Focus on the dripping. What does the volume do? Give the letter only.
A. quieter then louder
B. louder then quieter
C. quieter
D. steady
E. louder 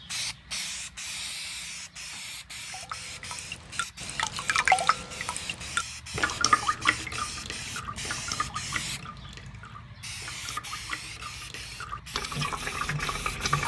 A.